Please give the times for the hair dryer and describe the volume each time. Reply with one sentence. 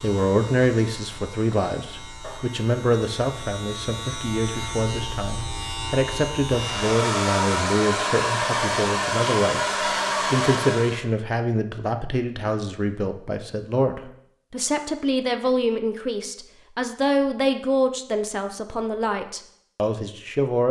The hair dryer can be heard from 6.5 to 11.1 s, at a steady volume.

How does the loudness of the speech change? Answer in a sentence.
The volume of the speech stays about the same.